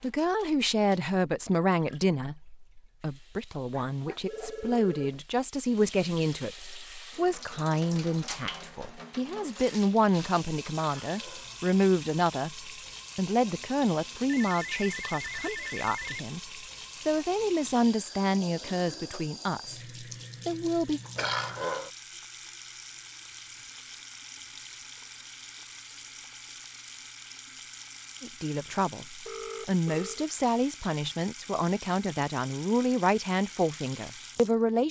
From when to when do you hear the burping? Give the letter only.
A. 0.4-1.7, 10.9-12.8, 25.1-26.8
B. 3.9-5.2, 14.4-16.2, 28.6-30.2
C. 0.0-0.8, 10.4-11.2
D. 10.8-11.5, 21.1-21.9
D.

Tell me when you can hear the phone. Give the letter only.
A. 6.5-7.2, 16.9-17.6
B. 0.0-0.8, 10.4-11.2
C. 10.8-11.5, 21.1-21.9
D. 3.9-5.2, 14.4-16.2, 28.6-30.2
D.